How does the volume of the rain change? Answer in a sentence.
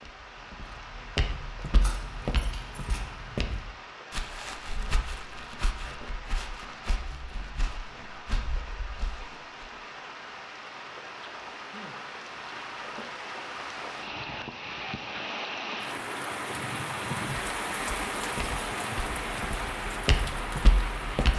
The volume of the rain goes up.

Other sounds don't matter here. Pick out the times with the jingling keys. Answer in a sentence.
You can hear the jingling keys from 1.8 to 3.0 s.